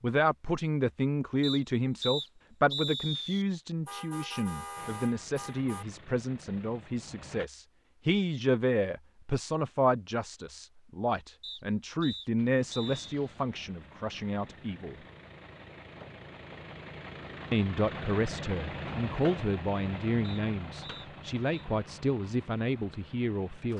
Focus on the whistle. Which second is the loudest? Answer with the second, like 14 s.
3 s.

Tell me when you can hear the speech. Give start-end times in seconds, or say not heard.
0.0-14.9, 17.5-23.7.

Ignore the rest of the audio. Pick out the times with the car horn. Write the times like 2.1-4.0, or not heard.
3.9-5.8.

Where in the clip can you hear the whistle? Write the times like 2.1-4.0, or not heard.
1.4-3.5, 11.4-13.1, 20.2-21.7.